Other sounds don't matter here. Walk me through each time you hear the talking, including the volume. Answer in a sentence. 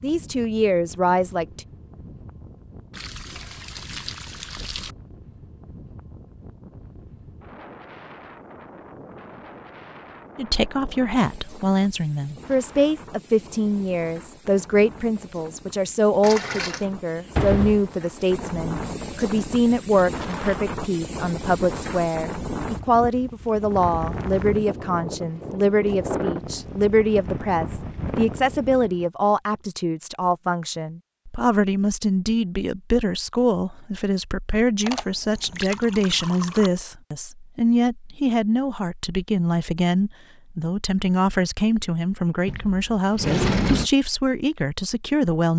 The talking can be heard briefly from 0.0 to 1.6 s; and from 10.3 to 45.5 s, at a steady volume.